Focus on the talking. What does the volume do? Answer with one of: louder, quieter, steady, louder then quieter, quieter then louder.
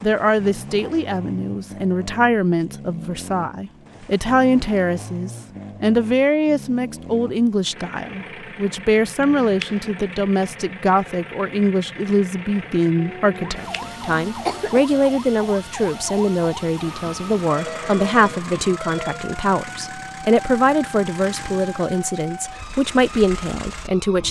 steady.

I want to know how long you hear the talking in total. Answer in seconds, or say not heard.
24 s.